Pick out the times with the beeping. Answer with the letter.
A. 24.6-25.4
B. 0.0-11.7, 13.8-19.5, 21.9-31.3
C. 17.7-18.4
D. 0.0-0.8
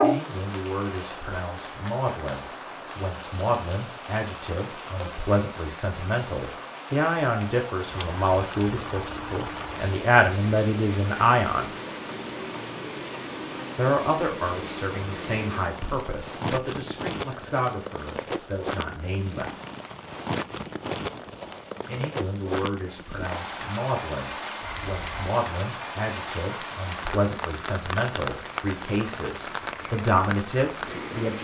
A.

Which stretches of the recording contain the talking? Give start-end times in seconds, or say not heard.
0.0-11.7, 13.8-19.5, 21.9-31.3.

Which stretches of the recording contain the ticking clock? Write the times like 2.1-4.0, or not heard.
not heard.